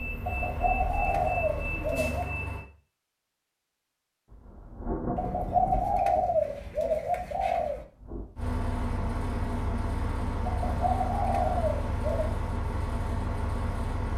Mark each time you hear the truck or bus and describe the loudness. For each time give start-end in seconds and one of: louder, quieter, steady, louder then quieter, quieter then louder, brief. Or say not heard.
0.0-2.6 brief
8.3-14.1 steady.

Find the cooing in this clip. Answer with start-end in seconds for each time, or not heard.
0.2-2.3, 5.2-7.8, 10.4-12.3.